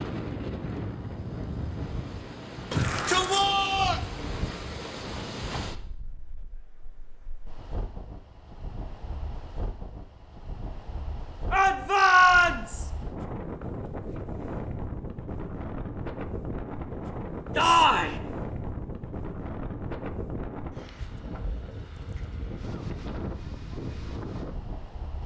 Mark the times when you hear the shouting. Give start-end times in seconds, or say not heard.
2.7-4.0, 11.5-12.9, 17.6-18.1.